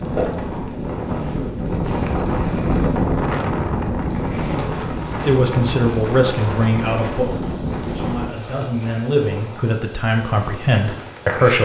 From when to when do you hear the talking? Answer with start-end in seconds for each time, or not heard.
5.2-11.6.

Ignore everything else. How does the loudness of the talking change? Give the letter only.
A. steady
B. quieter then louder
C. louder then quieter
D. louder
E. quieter
B.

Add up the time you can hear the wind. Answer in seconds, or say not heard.
8 s.